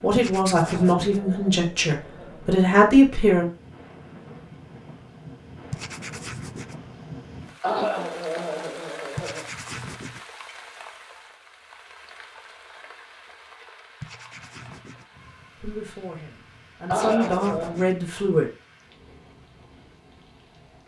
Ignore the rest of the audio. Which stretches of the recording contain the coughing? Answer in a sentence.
You can hear the coughing from 0.6 to 2.4 s, from 7.6 to 9.4 s and from 16.9 to 17.8 s.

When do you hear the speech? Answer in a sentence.
You can hear the speech from 0.0 to 3.5 s and from 15.6 to 18.5 s.